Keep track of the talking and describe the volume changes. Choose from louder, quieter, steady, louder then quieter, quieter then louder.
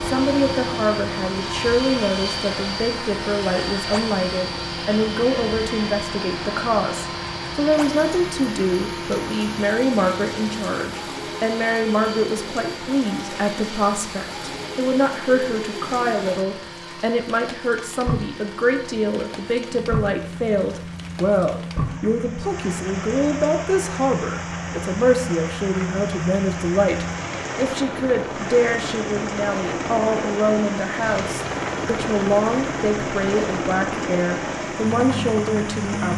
steady.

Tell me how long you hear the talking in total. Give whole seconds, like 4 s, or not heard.
36 s.